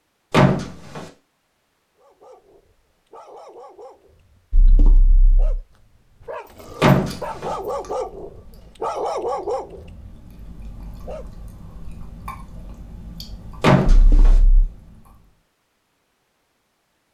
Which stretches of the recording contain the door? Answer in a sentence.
The door can be heard from 0.3 to 1.1 s, from 6.8 to 7.5 s and from 13.6 to 14.3 s.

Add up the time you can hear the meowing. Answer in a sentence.
The meowing can be heard for 2 seconds in total.